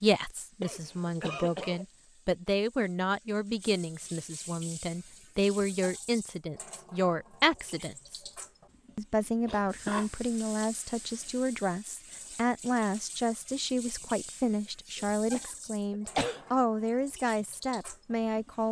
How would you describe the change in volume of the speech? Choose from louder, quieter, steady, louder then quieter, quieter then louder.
steady.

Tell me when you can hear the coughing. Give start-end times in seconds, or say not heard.
0.6-1.9, 9.4-10.1, 14.9-16.4.